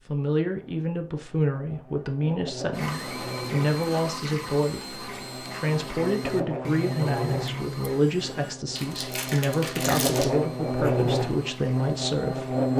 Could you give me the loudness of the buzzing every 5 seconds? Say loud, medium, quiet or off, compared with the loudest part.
quiet, medium, loud.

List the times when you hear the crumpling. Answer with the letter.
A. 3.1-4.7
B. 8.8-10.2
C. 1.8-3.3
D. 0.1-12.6
B.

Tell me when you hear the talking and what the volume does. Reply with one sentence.
You can hear the talking from 0.1 to 12.6 s, at a steady volume.